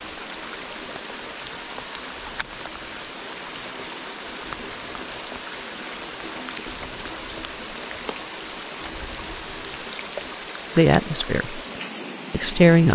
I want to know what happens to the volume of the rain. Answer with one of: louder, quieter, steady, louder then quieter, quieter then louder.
steady.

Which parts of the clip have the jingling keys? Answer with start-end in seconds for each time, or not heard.
not heard.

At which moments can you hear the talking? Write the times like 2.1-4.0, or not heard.
10.8-11.6, 12.3-12.9.